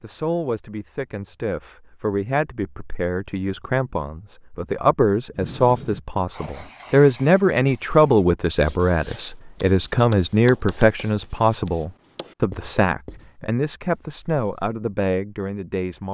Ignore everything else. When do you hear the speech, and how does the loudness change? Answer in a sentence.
You can hear the speech from 0.0 to 16.1 s, getting louder then quieter.